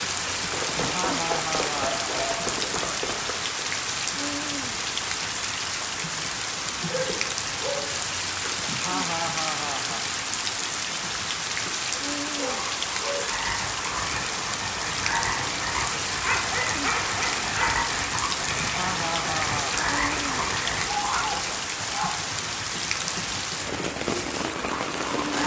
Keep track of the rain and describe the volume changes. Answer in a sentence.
The loudness of the rain stays about the same.